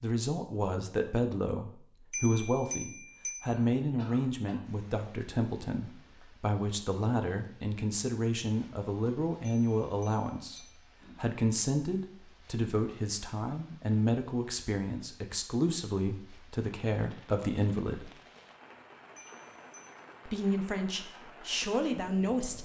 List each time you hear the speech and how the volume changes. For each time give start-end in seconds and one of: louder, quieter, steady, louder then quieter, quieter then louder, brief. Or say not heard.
0.0-18.1 steady
20.2-22.5 brief.